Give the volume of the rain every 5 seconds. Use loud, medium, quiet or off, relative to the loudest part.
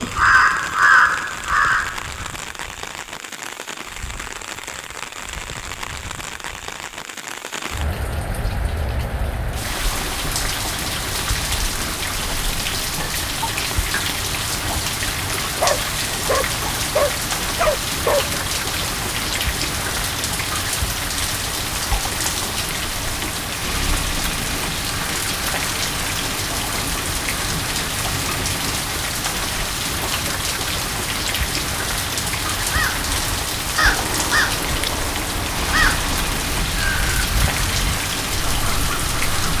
medium, medium, loud, loud, loud, loud, loud, loud.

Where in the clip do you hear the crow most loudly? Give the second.
1 s.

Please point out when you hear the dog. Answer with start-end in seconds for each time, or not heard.
15.6-18.3.